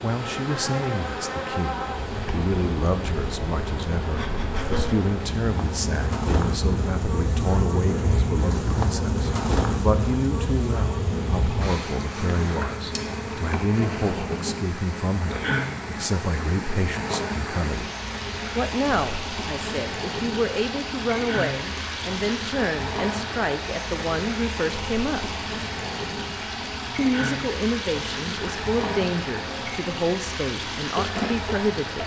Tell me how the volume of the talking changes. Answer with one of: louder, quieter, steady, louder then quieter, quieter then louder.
steady.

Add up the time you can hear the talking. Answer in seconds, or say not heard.
30 s.